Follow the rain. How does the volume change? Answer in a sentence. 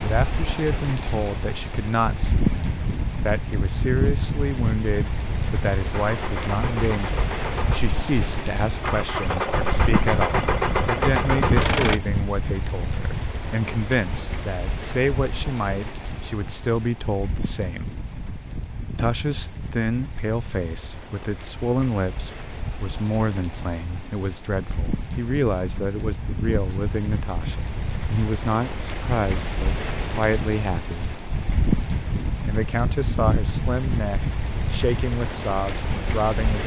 The loudness of the rain goes down, then up.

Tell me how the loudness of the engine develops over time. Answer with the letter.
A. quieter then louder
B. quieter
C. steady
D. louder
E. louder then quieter
D.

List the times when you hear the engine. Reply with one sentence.
The engine can be heard from 5.9 to 12.0 s.